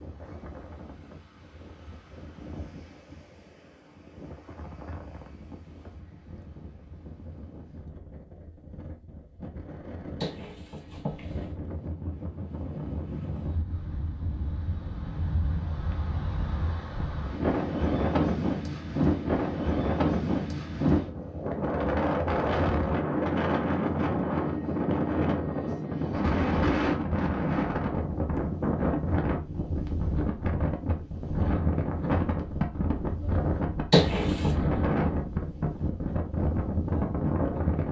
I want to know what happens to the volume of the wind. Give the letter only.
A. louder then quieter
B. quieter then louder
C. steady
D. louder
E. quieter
D.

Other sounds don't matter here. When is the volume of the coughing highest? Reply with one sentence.
The loudest moment of the coughing is at 34 seconds.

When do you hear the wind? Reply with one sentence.
The wind can be heard from 0.0 to 37.8 s.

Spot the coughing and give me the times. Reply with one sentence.
You can hear the coughing from 10.2 to 11.5 s and from 33.9 to 34.5 s.